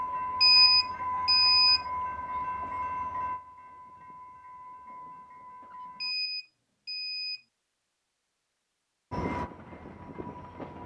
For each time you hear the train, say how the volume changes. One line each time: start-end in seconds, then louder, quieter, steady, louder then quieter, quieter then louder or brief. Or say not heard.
0.0-6.2 quieter
9.1-10.8 brief.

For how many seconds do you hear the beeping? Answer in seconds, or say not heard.
3 s.